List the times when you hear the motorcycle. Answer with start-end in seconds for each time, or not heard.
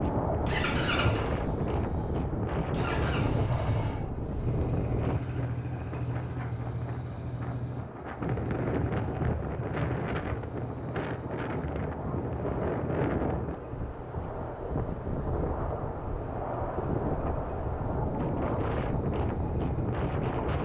0.2-20.6.